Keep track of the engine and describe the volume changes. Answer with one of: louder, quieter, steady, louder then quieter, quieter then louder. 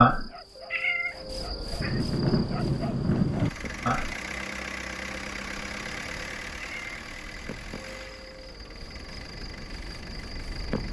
quieter.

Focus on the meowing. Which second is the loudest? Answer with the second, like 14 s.
1 s.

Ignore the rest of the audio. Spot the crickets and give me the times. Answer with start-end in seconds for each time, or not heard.
0.0-10.8.